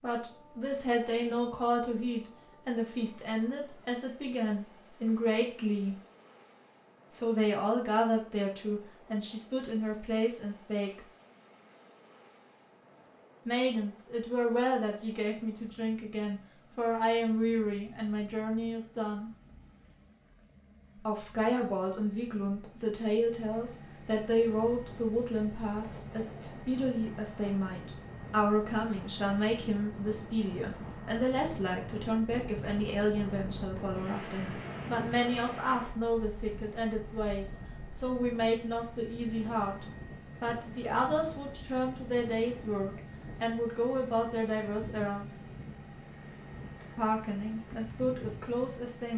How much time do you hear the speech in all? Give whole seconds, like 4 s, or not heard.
42 s.